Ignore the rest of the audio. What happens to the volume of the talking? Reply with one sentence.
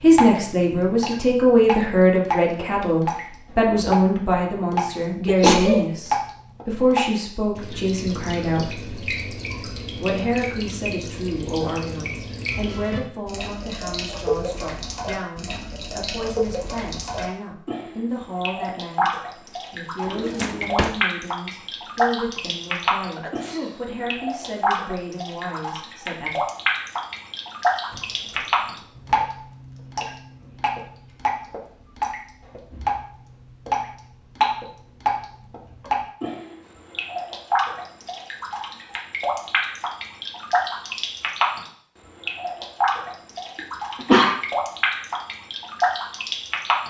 The loudness of the talking goes down.